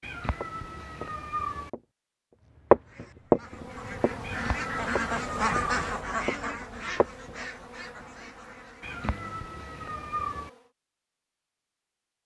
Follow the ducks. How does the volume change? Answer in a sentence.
The volume of the ducks goes up, then down.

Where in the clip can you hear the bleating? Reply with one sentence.
The bleating can't be heard in this clip.